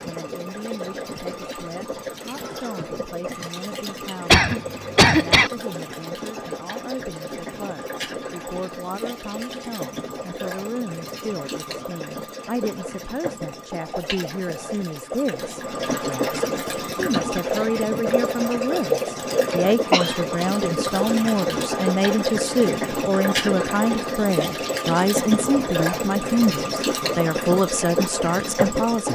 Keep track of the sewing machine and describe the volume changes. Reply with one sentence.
The loudness of the sewing machine goes up.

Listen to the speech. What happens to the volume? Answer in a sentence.
The loudness of the speech goes up.